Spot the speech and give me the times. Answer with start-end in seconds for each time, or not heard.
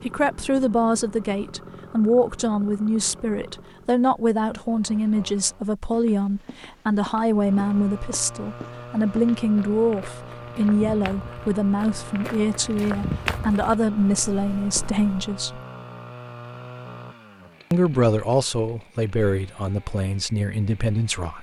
0.0-15.6, 17.7-21.3.